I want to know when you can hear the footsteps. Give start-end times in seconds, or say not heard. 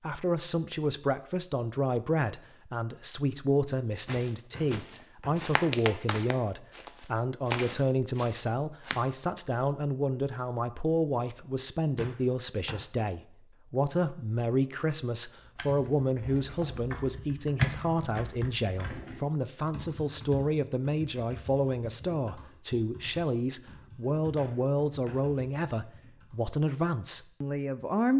4.0-9.1.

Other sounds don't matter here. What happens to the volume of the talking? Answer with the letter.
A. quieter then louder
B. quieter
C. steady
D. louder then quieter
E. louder
C.